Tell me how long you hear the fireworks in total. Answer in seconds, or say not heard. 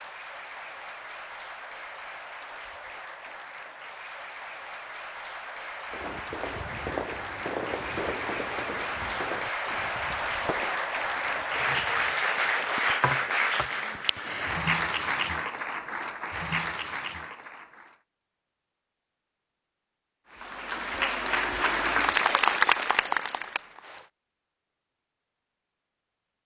6 s.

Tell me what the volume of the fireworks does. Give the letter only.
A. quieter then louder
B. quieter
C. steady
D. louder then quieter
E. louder
B.